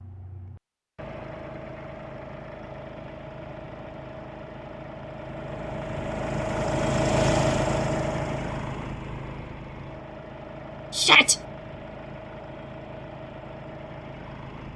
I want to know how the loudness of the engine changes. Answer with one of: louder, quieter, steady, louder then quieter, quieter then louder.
louder then quieter.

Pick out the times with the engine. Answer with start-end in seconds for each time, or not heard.
0.0-14.7.